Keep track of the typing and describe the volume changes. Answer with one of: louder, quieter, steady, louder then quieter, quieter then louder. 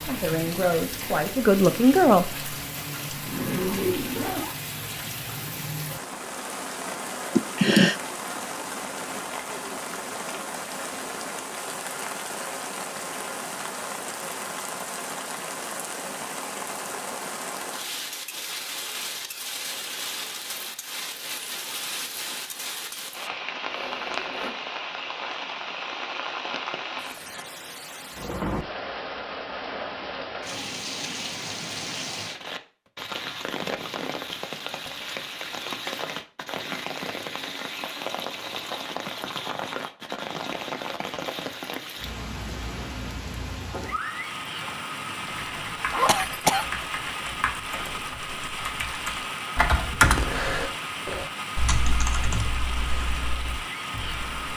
louder then quieter.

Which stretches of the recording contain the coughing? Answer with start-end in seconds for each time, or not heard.
7.3-8.0, 46.0-46.6.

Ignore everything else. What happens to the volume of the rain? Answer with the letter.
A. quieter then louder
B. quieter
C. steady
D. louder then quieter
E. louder
C.